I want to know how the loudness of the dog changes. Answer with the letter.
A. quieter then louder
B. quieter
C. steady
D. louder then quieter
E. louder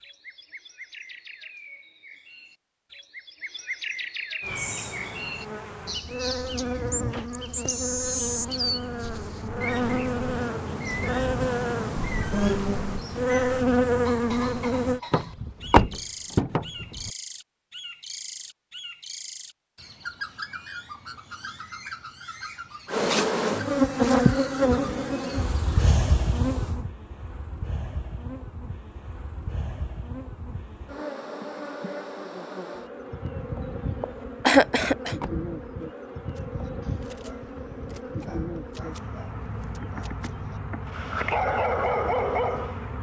E.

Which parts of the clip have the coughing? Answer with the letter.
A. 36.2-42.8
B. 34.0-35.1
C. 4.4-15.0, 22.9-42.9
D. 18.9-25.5
B.